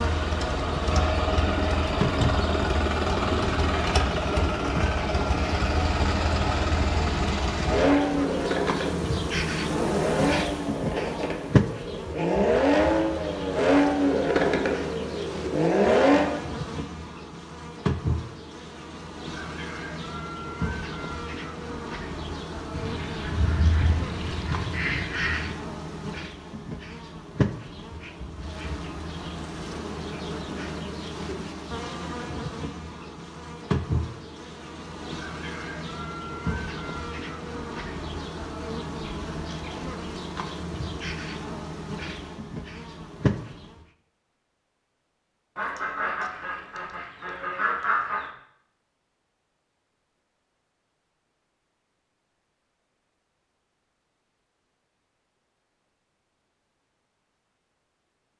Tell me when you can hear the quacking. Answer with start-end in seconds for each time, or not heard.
22.7-25.5, 45.5-48.3.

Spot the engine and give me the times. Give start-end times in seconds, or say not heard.
0.0-16.4.